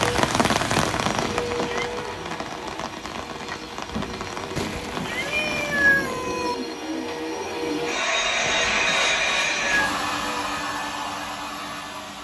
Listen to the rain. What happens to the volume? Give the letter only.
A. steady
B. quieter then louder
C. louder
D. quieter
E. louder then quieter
D.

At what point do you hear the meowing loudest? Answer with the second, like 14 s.
6 s.